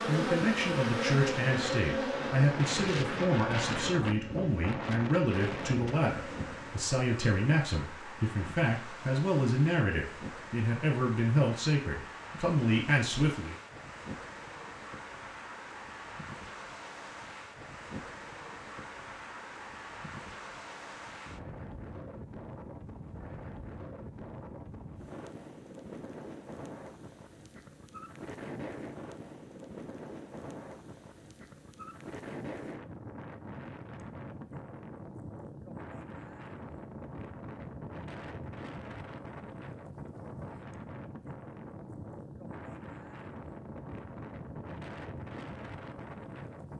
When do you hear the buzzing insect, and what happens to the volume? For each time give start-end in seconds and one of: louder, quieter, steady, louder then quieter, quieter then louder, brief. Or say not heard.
0.0-6.8 quieter.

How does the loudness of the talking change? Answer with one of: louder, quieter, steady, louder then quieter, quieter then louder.
steady.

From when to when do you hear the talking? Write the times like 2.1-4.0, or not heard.
0.1-13.6.